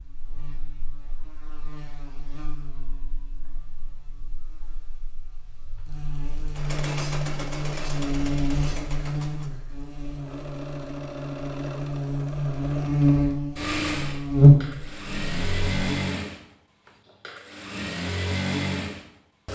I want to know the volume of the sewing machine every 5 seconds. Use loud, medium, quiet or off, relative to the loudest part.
off, medium, medium, loud.